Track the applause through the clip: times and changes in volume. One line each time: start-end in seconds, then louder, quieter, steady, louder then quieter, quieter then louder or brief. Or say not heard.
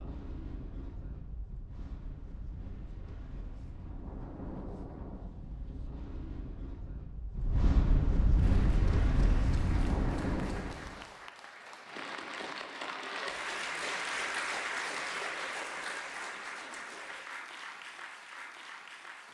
8.3-19.3 louder then quieter.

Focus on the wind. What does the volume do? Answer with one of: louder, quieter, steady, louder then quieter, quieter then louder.
louder.